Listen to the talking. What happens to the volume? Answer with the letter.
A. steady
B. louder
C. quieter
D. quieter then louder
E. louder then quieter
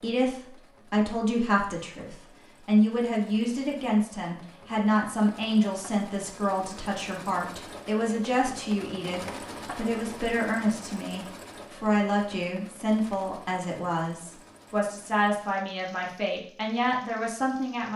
A.